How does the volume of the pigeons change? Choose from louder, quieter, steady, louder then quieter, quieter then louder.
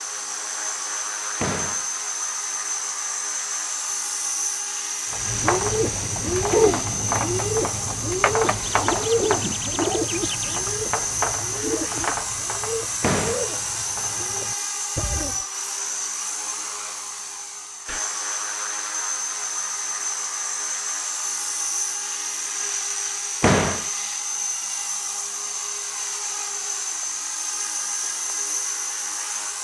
quieter.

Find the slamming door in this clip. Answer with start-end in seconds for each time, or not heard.
1.4-1.9, 13.0-13.4, 23.4-23.9.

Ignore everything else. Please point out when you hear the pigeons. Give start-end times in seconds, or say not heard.
5.1-15.4.